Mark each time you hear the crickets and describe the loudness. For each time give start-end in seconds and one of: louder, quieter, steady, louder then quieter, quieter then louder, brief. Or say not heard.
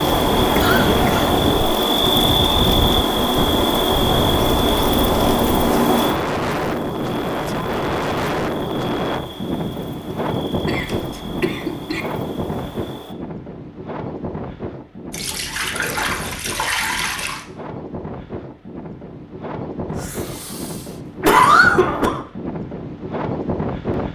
0.0-13.2 quieter.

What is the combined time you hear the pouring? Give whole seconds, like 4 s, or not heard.
2 s.